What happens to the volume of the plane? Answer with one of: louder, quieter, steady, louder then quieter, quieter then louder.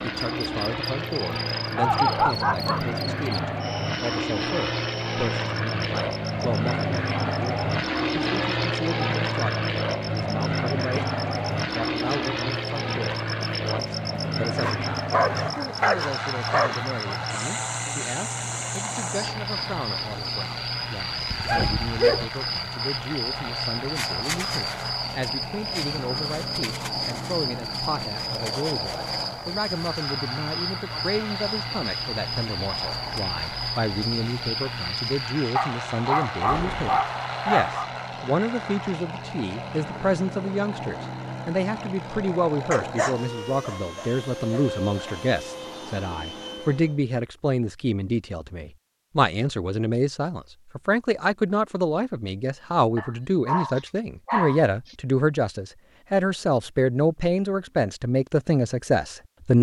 quieter.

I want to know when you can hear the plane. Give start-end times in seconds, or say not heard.
0.0-47.0.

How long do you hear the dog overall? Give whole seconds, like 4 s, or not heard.
11 s.